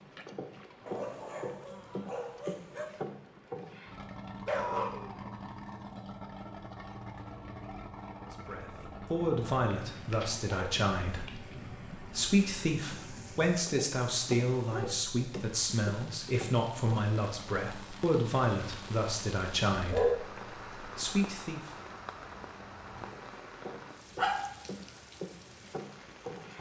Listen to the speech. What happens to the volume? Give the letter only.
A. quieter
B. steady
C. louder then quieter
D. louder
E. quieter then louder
B.